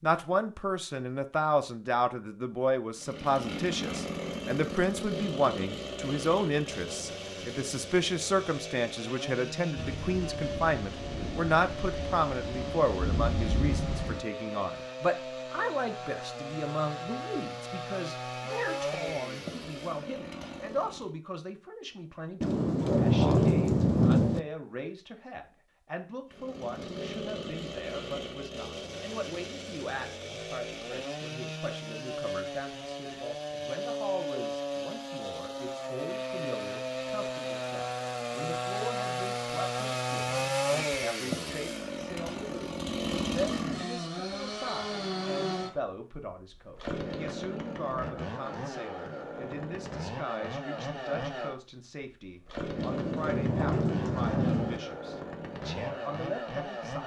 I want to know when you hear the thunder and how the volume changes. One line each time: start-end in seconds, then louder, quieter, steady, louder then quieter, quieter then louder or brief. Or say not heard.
9.8-14.2 louder
22.4-24.4 brief
52.8-54.8 brief.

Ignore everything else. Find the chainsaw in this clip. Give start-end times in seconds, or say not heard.
3.0-21.1, 26.3-57.0.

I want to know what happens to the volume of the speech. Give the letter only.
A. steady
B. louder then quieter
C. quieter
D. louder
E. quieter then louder
C.